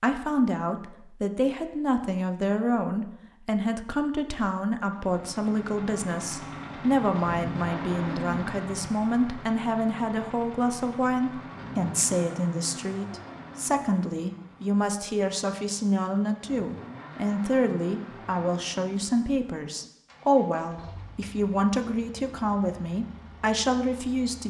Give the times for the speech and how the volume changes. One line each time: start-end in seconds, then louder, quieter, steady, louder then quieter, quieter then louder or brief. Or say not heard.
0.0-24.4 steady.